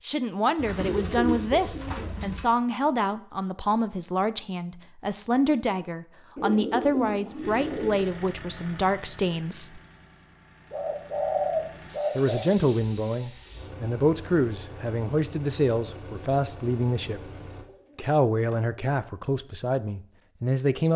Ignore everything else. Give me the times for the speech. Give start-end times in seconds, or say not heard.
0.1-9.8, 12.2-17.2, 17.9-20.9.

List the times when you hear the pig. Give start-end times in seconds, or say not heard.
not heard.